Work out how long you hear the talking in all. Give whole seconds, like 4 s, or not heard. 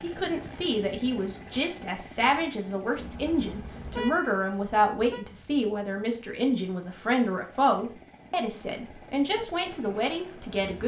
11 s.